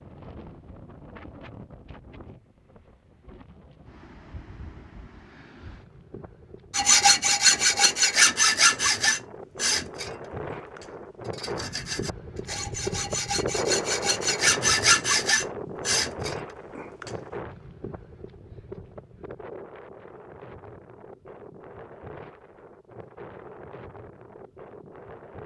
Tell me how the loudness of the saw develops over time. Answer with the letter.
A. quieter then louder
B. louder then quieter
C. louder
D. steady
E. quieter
A.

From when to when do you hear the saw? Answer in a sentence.
The saw can be heard from 6.7 to 17.1 s.